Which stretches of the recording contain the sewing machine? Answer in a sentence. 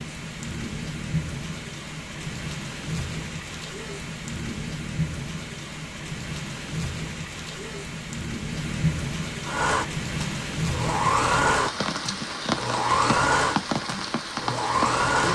The sewing machine can be heard from 9.4 to 15.2 s.